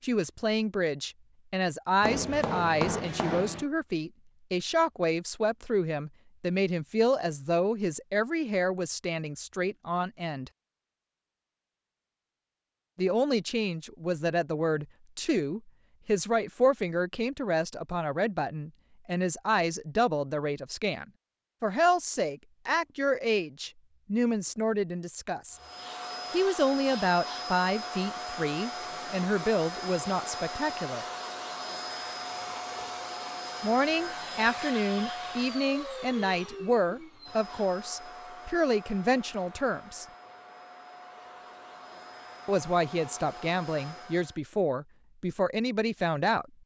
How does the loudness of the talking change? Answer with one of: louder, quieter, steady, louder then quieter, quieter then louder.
steady.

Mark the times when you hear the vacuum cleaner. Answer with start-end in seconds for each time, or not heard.
25.5-44.4.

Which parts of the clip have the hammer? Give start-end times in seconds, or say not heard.
2.0-3.6.